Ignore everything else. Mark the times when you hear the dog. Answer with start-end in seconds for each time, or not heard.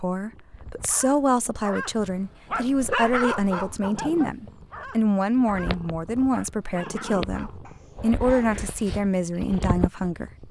0.8-8.6.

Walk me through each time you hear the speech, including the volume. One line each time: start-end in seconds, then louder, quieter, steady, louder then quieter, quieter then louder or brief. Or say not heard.
0.0-10.4 steady.